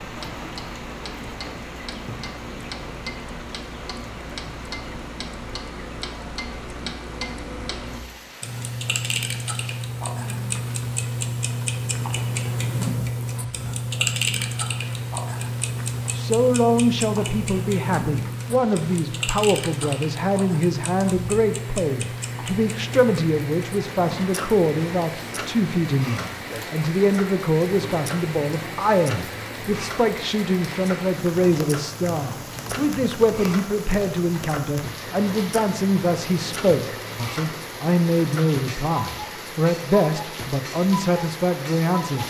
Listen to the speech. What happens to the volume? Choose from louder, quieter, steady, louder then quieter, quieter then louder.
steady.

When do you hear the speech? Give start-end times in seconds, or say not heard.
16.1-42.2.